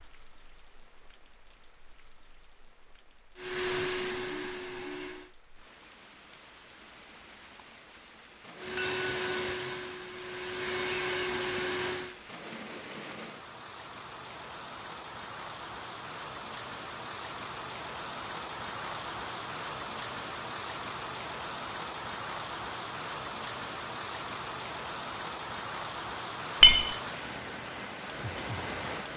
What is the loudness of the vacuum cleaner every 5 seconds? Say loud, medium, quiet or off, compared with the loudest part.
loud, loud, loud, off, off, off.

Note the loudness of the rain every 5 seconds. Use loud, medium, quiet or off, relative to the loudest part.
quiet, quiet, medium, loud, loud, loud.